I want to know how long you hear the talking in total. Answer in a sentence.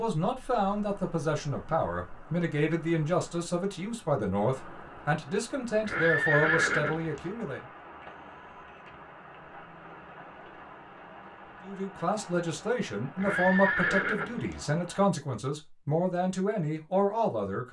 You can hear the talking for 14 seconds altogether.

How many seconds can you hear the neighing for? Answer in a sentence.
You can hear the neighing for 3 seconds altogether.